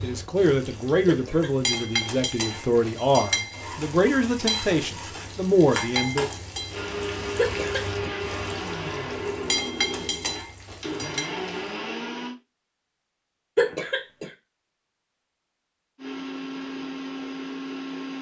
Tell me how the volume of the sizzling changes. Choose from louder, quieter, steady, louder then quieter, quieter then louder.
quieter then louder.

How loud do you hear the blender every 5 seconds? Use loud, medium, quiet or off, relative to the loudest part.
off, loud, loud, loud.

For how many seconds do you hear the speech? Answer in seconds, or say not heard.
6 s.